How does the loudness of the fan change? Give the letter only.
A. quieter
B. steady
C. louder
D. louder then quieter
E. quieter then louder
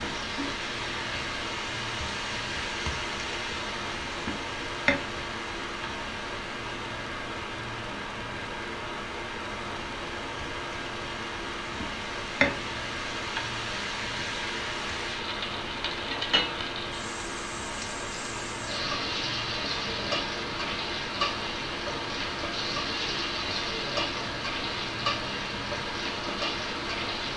B.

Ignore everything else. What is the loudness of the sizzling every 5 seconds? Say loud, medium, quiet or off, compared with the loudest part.
loud, medium, loud, loud, loud, loud.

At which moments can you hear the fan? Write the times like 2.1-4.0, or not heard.
0.0-27.3.